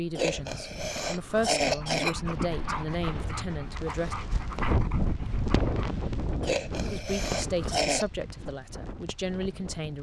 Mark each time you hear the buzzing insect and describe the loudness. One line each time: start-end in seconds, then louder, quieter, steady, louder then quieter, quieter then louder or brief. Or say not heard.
not heard.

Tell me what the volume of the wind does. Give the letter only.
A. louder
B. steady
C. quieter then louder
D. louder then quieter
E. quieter
D.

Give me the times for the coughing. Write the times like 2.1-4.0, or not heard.
0.1-2.1, 6.4-8.1.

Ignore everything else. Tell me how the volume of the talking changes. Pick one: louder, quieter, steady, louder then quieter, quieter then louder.
steady.